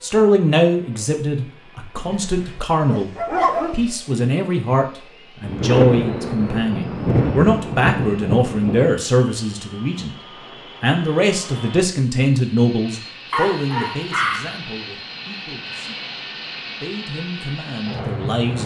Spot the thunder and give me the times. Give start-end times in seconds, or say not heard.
5.4-8.9.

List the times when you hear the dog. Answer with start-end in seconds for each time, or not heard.
1.9-3.9, 13.3-14.6.